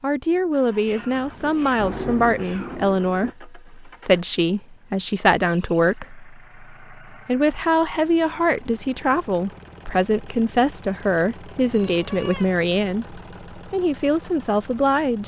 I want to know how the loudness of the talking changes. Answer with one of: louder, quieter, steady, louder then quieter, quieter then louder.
steady.